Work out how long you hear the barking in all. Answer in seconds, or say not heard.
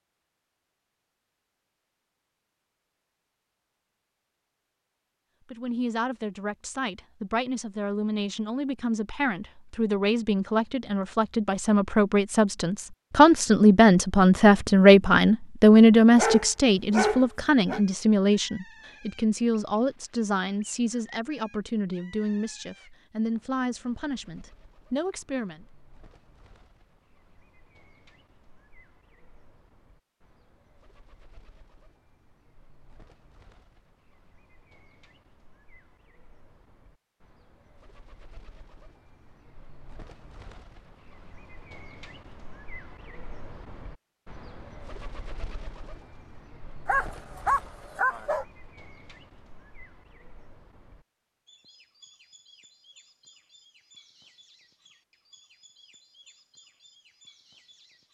3 s.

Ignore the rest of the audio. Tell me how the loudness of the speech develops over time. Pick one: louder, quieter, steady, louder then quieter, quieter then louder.
louder then quieter.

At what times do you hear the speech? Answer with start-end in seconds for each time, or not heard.
5.5-25.6.